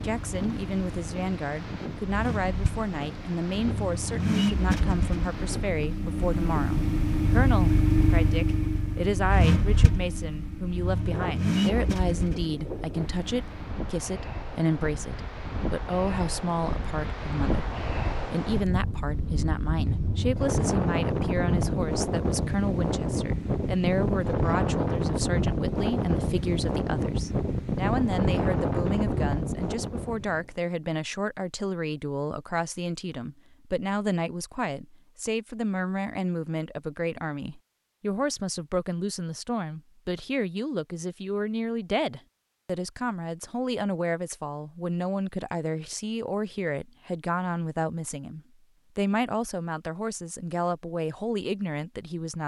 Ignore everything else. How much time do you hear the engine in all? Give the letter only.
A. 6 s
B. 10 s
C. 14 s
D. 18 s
C.